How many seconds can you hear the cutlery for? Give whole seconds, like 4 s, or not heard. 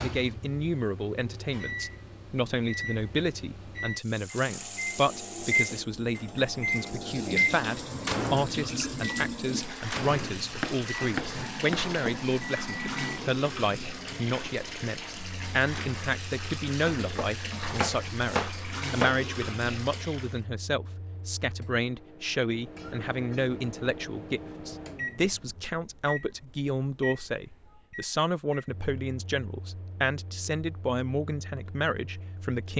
not heard.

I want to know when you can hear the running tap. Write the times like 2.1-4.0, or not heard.
4.0-20.4.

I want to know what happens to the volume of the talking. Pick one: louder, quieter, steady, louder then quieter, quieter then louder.
steady.